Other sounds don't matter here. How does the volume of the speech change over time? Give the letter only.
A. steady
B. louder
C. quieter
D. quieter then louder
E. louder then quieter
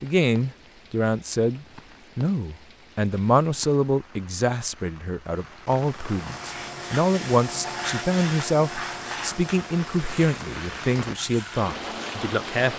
A.